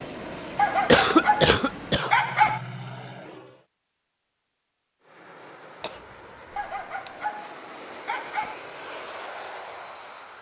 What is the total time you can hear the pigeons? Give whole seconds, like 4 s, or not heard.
not heard.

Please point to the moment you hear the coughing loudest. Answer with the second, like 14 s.
1 s.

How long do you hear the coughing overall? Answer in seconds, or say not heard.
3 s.